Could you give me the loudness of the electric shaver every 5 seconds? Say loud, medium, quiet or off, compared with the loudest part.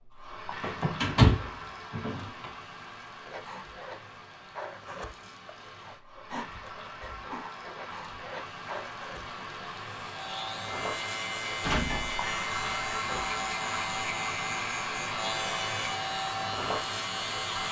off, off, loud, loud.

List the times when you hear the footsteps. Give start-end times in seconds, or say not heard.
not heard.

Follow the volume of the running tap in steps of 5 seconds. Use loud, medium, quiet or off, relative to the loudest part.
medium, medium, loud, loud.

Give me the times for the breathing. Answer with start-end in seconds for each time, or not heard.
3.2-9.4.